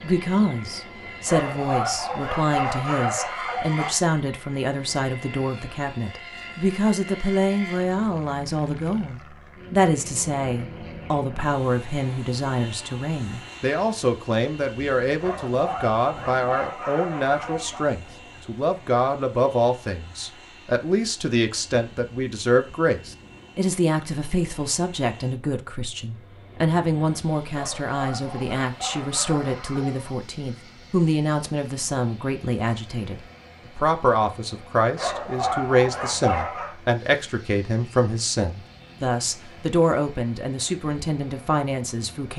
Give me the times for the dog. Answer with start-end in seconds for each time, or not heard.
1.2-4.0, 15.2-17.9, 27.5-30.1, 35.0-36.8.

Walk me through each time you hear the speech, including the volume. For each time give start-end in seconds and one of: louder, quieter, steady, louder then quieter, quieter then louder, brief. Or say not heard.
0.0-42.3 steady.